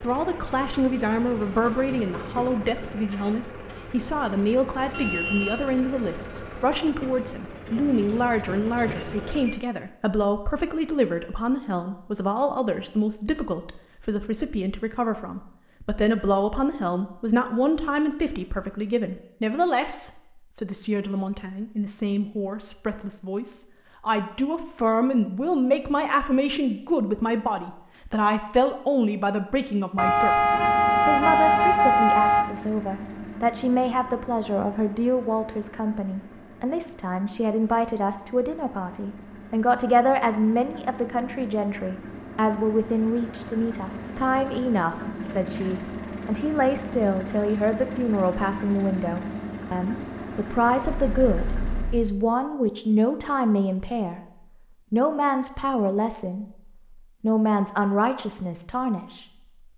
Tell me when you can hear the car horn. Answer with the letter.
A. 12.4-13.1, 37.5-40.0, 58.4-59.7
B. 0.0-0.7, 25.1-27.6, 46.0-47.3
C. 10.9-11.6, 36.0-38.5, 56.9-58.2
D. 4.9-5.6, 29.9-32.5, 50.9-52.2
D.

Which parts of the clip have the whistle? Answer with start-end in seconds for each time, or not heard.
not heard.